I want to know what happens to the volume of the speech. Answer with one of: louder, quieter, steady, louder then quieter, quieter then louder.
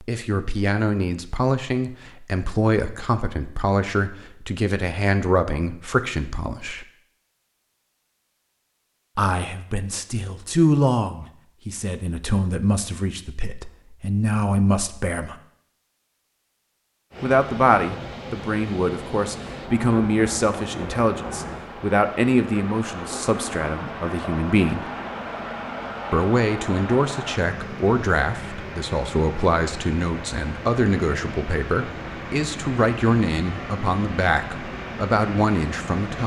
steady.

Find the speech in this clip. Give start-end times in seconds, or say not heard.
0.0-6.8, 9.2-15.3, 17.2-24.9, 26.1-36.2.